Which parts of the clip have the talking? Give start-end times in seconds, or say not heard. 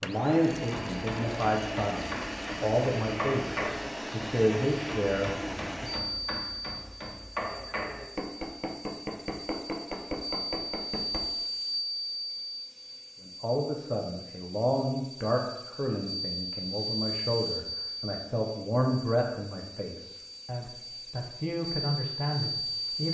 0.0-5.8, 13.2-23.0.